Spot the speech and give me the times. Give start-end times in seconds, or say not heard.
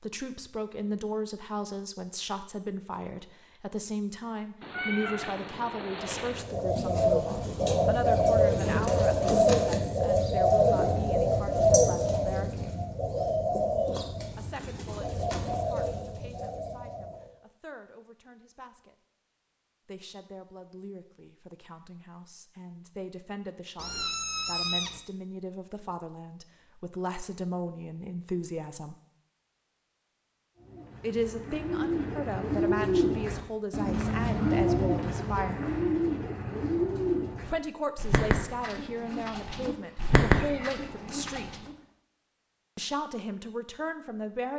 0.0-12.8, 14.3-18.9, 19.9-28.9, 31.0-35.6, 37.5-41.6, 42.8-44.5.